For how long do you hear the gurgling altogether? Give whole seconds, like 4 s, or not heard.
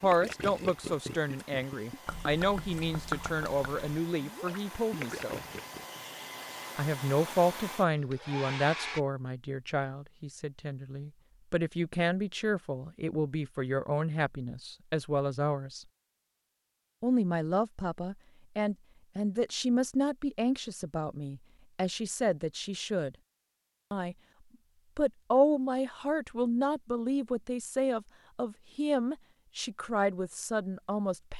6 s.